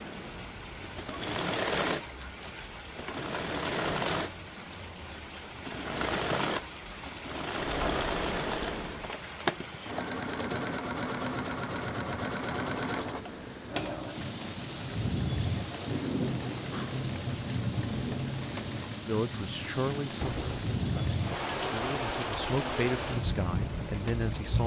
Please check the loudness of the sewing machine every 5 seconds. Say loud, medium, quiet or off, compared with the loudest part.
loud, loud, loud, medium, medium.